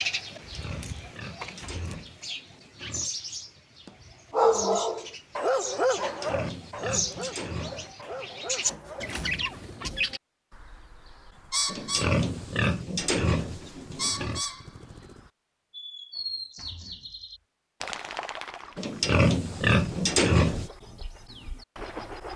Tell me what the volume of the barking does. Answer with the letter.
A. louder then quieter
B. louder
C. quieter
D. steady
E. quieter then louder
C.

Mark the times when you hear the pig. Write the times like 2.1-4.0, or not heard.
0.2-3.1, 6.0-7.9, 11.7-14.4, 18.8-20.7.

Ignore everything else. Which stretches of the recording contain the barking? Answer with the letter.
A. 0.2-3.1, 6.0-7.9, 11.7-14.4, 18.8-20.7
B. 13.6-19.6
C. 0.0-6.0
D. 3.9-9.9
D.